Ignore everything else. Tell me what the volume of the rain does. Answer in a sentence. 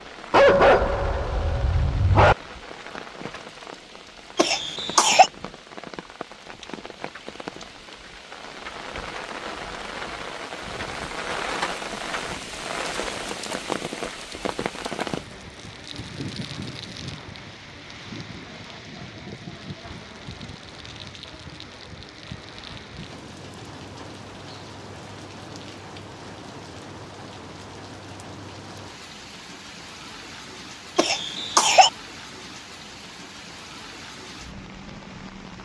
The loudness of the rain goes up, then down.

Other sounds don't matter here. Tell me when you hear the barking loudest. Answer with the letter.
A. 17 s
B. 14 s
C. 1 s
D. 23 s
C.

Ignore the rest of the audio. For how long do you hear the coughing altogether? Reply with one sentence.
You can hear the coughing for 2 seconds altogether.